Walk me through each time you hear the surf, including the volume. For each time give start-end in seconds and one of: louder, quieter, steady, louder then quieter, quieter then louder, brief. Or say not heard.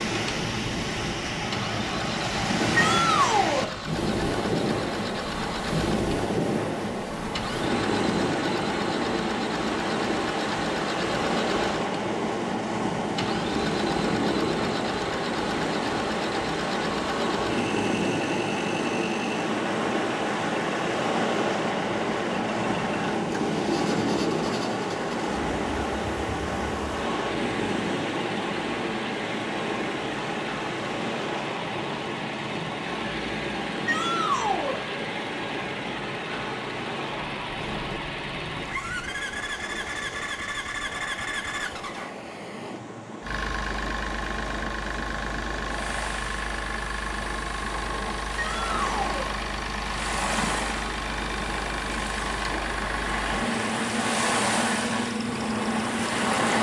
0.0-56.5 quieter then louder.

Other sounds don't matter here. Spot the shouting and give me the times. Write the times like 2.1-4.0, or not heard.
2.8-3.7, 33.9-34.8, 48.4-49.3.